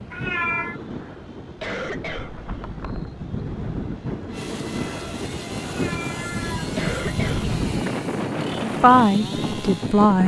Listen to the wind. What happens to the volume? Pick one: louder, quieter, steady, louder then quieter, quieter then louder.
louder.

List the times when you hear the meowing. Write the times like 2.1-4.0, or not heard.
0.1-0.8, 5.7-6.8.